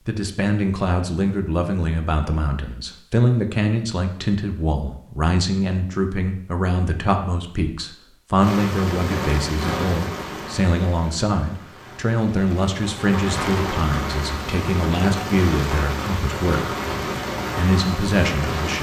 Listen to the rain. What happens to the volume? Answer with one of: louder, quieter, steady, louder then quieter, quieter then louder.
quieter then louder.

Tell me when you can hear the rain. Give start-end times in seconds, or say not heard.
8.3-18.7.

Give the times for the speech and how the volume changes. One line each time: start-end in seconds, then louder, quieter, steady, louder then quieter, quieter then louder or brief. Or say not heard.
0.1-16.7 steady
17.6-18.7 brief.